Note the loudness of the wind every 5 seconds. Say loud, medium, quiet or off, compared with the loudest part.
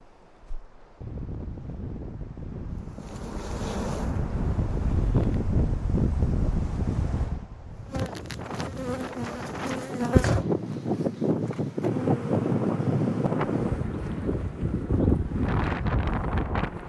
medium, loud, loud, loud.